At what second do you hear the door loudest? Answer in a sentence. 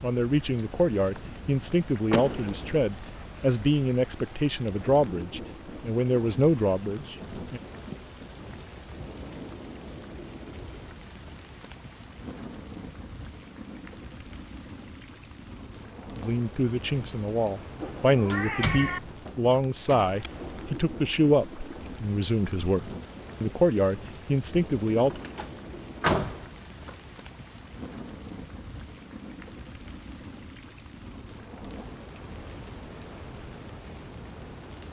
The loudest moment of the door is at 26 seconds.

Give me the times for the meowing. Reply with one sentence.
The meowing can be heard from 17.8 to 19.0 s.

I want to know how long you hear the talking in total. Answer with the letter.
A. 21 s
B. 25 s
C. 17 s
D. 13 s
C.